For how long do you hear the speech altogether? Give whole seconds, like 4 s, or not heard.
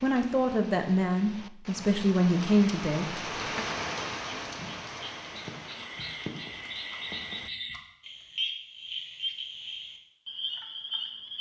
4 s.